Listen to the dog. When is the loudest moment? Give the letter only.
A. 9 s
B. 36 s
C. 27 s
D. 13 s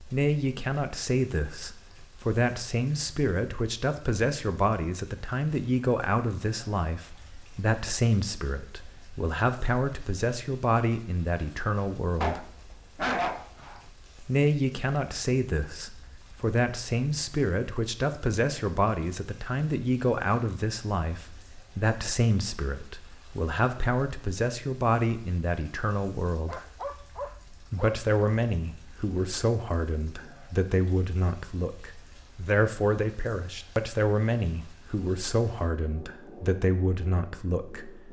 D.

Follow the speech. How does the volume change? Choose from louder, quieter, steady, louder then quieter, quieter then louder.
steady.